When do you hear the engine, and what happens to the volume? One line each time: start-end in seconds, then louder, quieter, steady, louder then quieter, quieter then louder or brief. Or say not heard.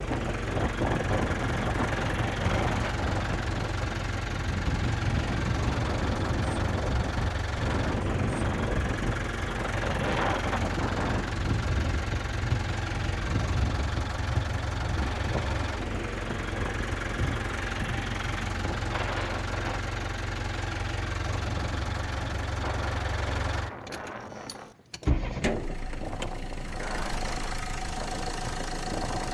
0.0-29.2 steady.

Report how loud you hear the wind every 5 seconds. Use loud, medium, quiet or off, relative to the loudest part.
loud, loud, loud, medium, medium, medium.